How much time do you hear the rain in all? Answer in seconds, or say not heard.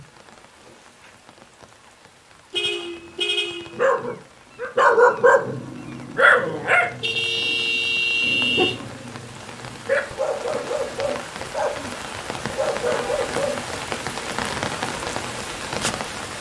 16 s.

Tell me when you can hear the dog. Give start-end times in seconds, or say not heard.
3.7-13.6.